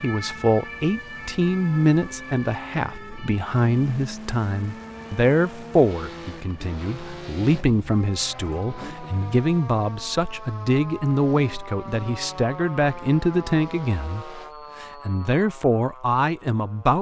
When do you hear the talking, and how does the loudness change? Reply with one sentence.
The talking can be heard from 0.0 to 16.9 s, at a steady volume.